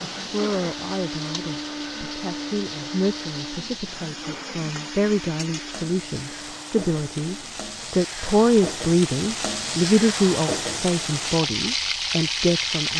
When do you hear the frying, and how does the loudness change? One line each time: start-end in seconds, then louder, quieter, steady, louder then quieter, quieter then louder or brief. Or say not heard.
0.0-12.9 louder.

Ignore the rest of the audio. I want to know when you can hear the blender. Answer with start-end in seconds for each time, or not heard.
0.0-7.7.